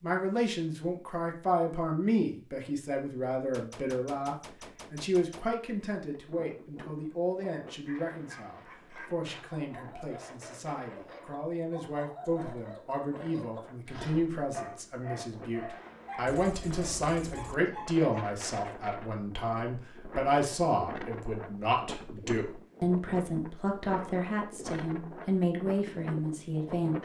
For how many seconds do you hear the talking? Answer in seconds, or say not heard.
27 s.